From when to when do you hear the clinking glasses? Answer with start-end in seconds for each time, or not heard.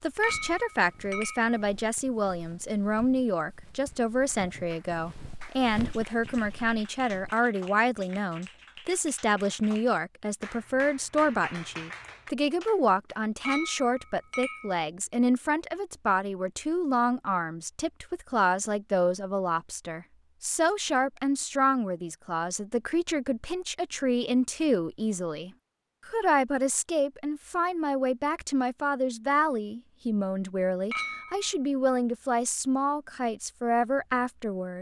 0.2-1.6, 13.4-14.8, 30.9-31.5.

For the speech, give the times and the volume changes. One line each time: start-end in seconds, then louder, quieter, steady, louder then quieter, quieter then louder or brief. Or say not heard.
0.0-34.7 steady.